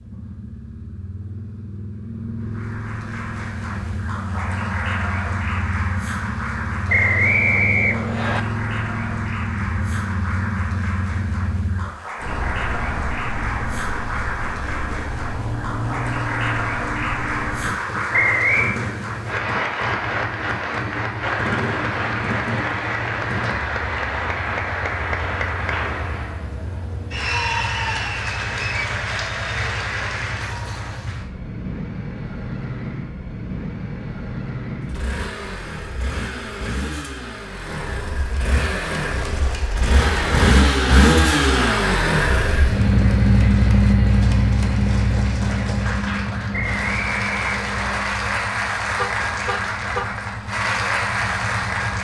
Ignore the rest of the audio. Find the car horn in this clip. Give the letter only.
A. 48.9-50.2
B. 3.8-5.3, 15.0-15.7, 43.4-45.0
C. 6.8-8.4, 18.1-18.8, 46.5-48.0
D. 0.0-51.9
A.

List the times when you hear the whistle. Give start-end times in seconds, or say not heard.
6.8-8.4, 18.1-18.8, 46.5-48.0.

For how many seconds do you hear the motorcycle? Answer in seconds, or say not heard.
52 s.